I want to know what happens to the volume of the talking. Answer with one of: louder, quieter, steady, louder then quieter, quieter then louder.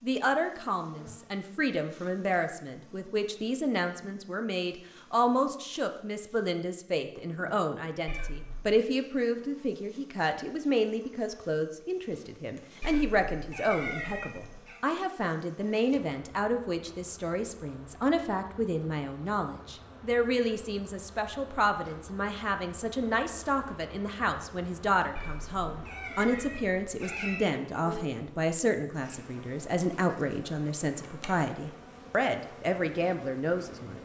steady.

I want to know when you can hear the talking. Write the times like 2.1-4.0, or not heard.
0.0-33.9.